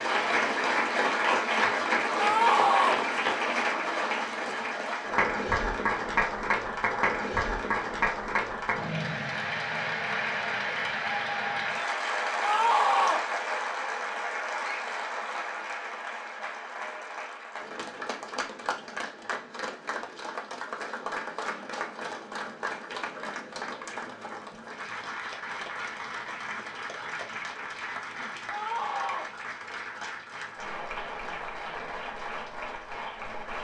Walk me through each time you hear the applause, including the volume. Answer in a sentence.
The applause can be heard from 0.0 to 33.5 s, getting quieter.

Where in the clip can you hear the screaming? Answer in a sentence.
You can hear the screaming from 2.1 to 3.0 s, from 12.4 to 13.2 s and from 28.4 to 29.3 s.